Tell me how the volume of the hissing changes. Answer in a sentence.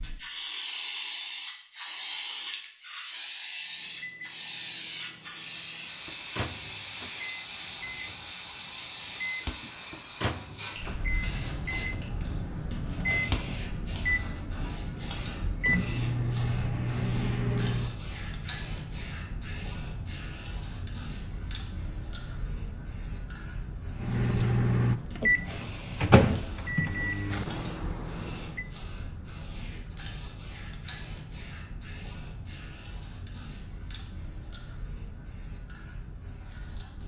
The loudness of the hissing goes down.